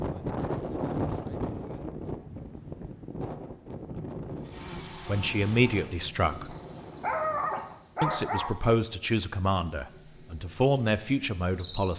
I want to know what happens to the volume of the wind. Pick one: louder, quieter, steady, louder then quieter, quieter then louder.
quieter.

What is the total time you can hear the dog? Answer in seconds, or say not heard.
2 s.